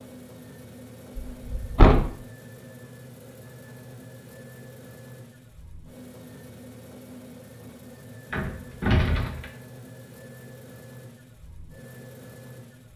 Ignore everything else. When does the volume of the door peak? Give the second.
2 s.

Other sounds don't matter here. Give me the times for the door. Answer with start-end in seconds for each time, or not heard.
1.3-2.1, 8.3-9.5.